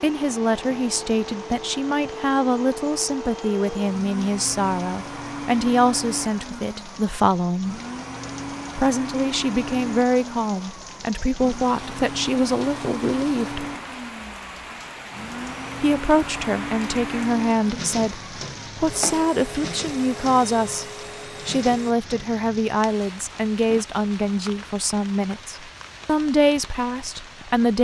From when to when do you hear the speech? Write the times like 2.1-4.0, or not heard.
0.0-7.8, 8.8-13.7, 15.8-20.9, 21.4-27.7.